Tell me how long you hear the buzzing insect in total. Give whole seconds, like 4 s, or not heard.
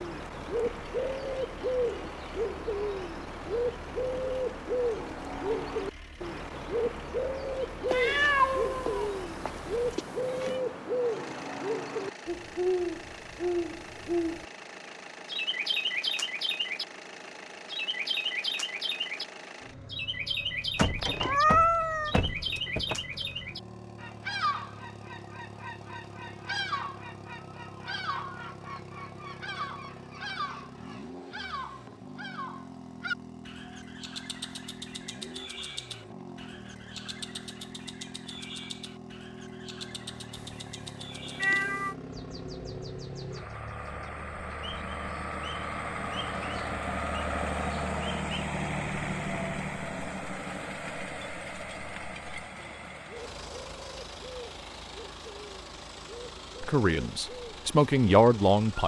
not heard.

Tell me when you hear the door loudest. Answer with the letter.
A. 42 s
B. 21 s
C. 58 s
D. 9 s
B.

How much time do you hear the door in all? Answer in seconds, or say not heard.
2 s.